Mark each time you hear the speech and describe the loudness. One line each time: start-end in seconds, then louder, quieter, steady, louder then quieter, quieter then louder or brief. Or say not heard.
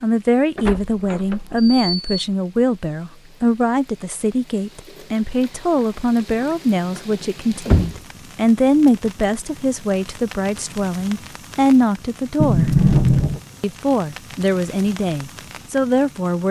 0.0-12.7 steady
13.6-16.4 brief.